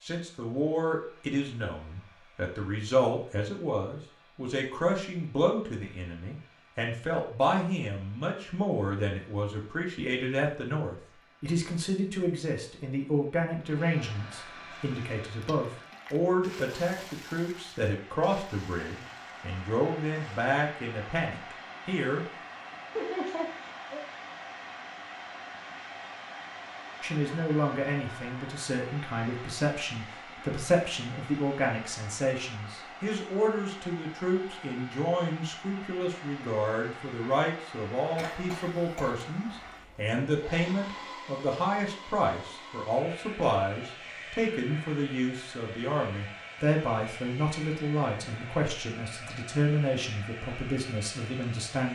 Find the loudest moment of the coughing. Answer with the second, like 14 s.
23 s.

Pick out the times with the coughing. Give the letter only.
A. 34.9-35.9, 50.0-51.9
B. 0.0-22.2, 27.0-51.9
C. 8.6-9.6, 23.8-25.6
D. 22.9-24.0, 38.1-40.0
D.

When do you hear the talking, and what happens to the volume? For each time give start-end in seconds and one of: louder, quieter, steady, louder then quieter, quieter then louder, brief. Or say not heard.
0.0-22.2 steady
27.0-51.9 steady.